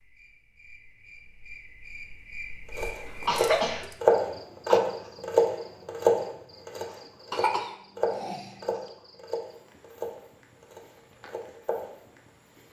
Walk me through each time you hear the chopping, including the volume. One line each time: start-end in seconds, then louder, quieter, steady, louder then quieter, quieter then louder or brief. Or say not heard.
2.8-11.9 quieter.